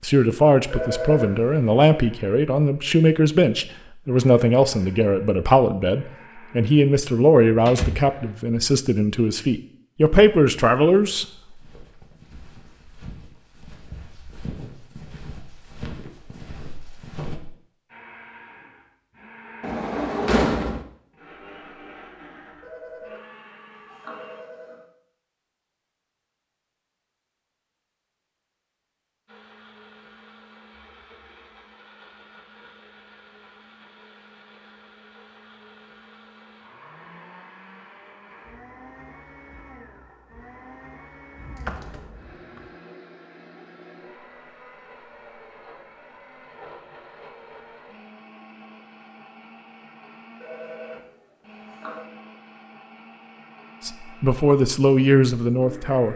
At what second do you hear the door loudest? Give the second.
20 s.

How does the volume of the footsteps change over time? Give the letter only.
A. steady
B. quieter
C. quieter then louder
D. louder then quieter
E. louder
E.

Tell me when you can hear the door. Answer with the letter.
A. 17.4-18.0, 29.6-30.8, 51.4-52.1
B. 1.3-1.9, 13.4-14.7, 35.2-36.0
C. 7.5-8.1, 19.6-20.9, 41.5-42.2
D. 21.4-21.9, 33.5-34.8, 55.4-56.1
C.